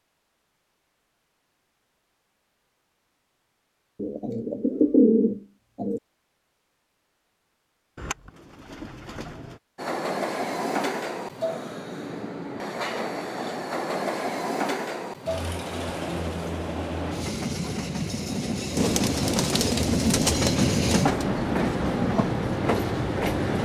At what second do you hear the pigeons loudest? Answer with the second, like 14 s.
5 s.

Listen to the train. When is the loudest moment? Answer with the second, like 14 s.
21 s.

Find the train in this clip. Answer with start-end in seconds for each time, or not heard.
9.8-23.5.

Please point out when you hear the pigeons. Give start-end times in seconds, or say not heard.
4.0-6.0, 8.0-9.6, 18.8-21.2.